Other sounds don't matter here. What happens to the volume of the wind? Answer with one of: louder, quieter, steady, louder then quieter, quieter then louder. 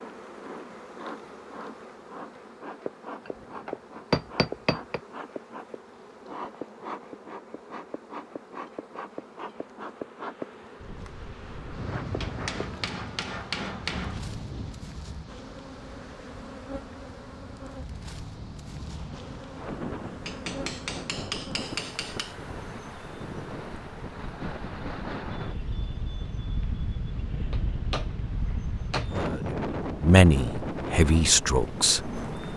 quieter then louder.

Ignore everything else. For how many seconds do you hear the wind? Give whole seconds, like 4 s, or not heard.
22 s.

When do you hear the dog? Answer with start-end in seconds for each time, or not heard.
not heard.